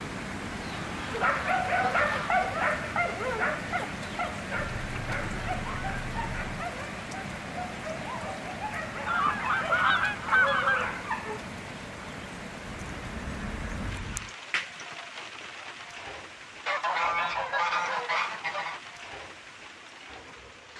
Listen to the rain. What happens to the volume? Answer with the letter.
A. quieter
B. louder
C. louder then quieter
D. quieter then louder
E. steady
A.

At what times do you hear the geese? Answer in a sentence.
The geese can be heard from 0.8 to 2.5 s, from 4.5 to 6.6 s, from 9.1 to 10.9 s, from 12.7 to 14.3 s and from 16.6 to 18.8 s.